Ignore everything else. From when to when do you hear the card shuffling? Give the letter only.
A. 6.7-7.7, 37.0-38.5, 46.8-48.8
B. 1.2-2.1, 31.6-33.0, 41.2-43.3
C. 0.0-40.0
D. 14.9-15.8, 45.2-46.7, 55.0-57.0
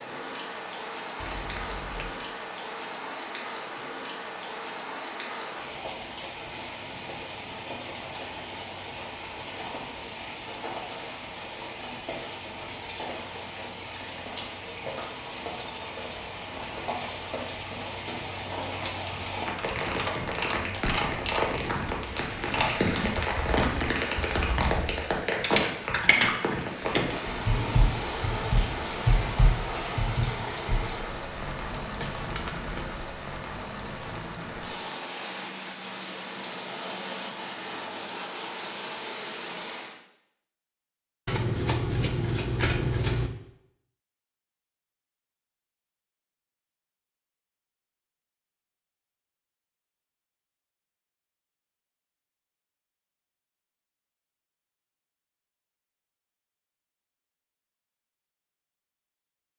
B.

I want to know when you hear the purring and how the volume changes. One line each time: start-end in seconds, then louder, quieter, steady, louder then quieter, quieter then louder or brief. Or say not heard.
not heard.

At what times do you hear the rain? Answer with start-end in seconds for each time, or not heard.
0.0-40.0.